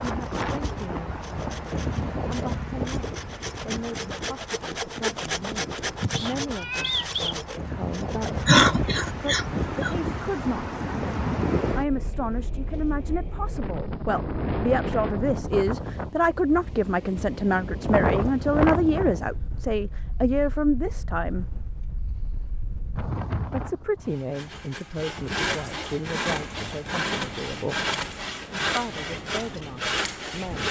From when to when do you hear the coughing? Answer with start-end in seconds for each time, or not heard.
8.4-9.9.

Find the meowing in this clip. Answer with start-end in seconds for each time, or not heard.
6.0-7.3.